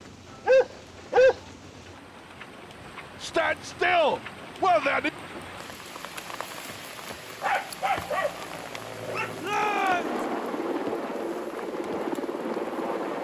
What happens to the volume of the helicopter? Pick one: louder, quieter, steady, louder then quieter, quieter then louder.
louder.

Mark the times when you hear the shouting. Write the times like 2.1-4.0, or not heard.
3.2-5.1, 9.4-10.2.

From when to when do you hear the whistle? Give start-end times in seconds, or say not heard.
not heard.